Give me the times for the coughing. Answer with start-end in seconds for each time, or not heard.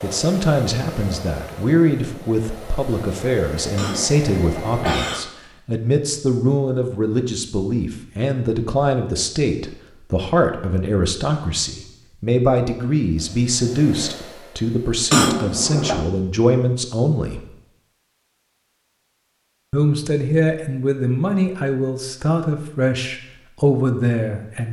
3.8-5.3, 15.1-16.1.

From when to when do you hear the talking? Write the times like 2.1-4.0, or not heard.
0.0-17.4, 19.7-24.6.